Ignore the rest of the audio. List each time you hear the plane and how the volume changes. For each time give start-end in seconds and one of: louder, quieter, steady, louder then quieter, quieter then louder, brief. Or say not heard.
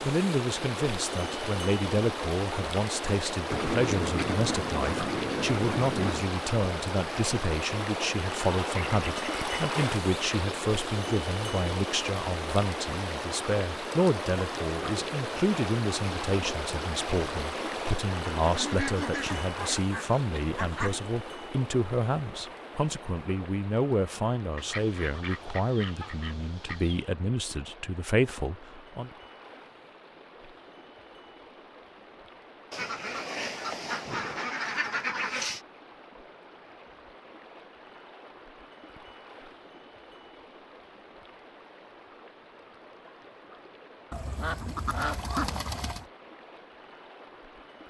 not heard.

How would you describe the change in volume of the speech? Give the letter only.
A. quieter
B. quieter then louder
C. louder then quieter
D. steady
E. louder
D.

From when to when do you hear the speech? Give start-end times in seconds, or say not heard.
0.0-29.1.